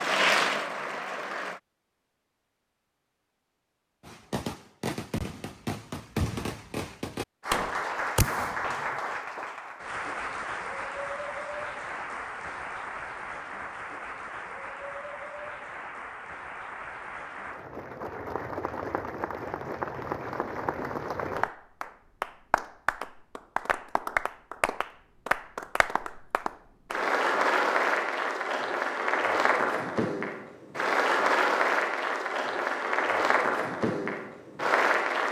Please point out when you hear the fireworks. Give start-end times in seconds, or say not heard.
4.0-8.8.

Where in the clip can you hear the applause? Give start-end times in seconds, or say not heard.
0.0-1.6, 7.4-35.2.